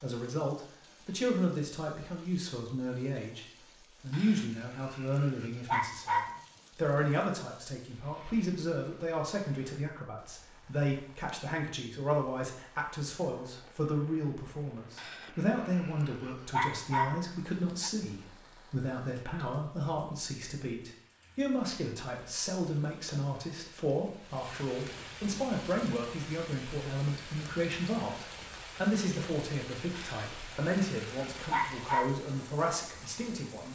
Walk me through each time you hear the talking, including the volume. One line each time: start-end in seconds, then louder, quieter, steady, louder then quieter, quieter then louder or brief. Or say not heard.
0.0-33.7 steady.